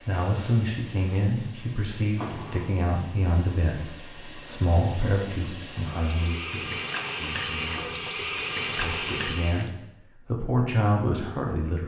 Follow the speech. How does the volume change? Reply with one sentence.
The volume of the speech goes down, then up.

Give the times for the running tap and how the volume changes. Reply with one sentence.
The running tap can be heard from 0.0 to 9.7 s, getting louder.